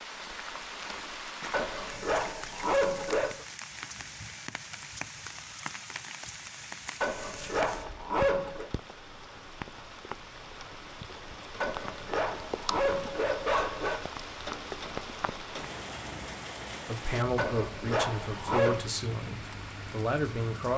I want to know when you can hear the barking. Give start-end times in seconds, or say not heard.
1.5-3.5, 7.0-8.7, 11.6-14.0, 17.4-18.9.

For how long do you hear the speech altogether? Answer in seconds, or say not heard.
4 s.